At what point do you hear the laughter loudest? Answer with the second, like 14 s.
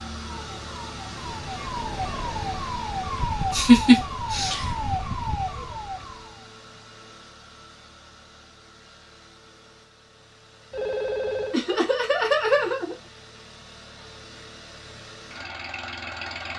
4 s.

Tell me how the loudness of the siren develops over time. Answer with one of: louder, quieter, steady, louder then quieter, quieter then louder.
louder.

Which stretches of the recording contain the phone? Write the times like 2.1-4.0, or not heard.
10.7-11.6.